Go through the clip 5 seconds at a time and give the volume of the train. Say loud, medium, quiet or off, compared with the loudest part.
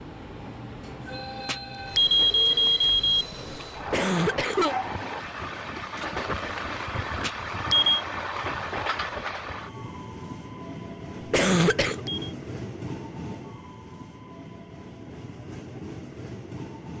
loud, loud, medium, medium.